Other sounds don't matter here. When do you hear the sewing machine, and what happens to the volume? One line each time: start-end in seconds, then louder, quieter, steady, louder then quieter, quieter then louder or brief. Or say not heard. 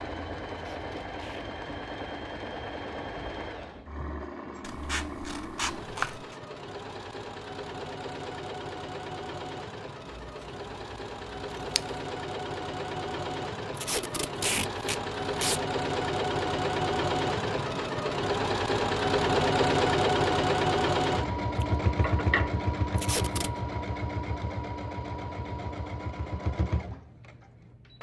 0.0-27.9 louder then quieter.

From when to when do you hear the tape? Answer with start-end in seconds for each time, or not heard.
0.5-1.4, 13.8-15.6, 22.9-23.5.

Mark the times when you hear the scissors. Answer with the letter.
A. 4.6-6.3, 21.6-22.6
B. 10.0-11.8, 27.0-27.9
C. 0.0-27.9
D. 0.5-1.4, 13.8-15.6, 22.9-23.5
A.